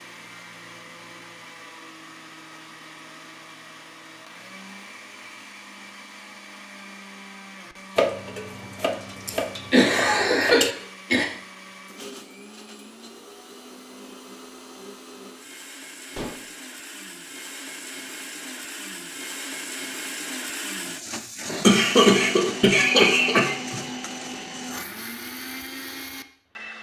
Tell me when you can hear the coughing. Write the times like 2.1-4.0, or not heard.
9.2-11.2, 21.6-23.8.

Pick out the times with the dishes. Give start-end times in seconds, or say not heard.
8.0-10.8, 16.1-16.6.